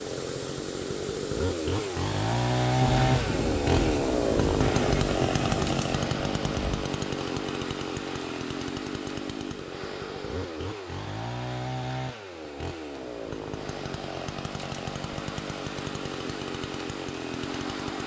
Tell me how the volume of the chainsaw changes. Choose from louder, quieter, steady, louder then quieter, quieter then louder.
quieter.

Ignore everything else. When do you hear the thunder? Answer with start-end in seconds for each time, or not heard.
2.8-6.8.